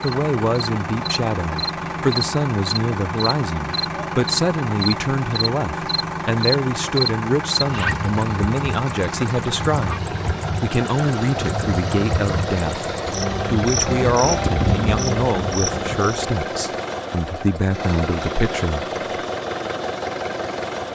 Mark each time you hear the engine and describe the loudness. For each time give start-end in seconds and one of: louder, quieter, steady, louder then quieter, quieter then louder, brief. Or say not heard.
0.0-20.9 steady.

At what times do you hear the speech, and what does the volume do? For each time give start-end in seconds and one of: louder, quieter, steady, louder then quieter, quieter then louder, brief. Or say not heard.
0.0-18.9 steady.